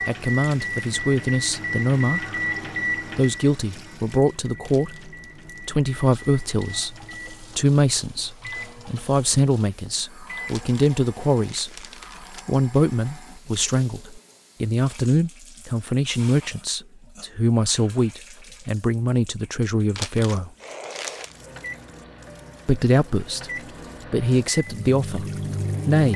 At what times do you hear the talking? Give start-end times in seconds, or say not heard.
0.1-2.2, 3.1-11.8, 12.4-20.5, 22.6-23.5, 24.1-26.1.